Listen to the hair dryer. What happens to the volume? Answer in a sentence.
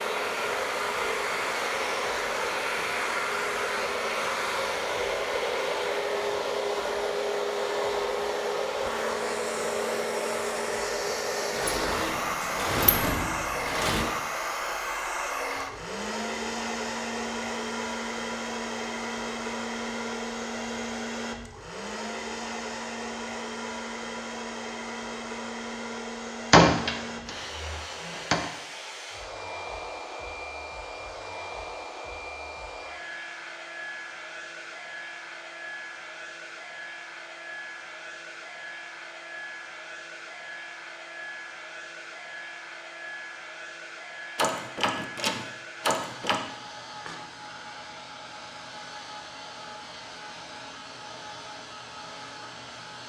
The loudness of the hair dryer goes down.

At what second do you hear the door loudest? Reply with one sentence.
The loudest moment of the door is at 27 seconds.